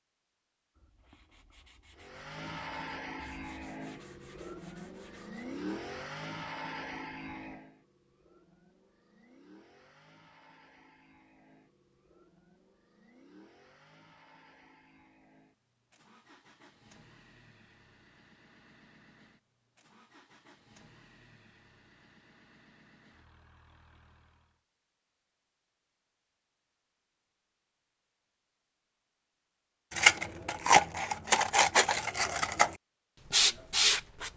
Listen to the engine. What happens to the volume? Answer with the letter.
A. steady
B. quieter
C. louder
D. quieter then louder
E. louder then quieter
B.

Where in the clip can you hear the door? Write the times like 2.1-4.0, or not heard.
not heard.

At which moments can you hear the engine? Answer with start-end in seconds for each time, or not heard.
1.9-24.6.